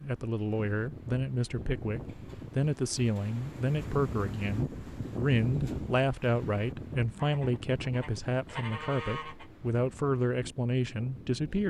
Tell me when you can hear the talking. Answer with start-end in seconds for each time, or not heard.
0.0-11.6.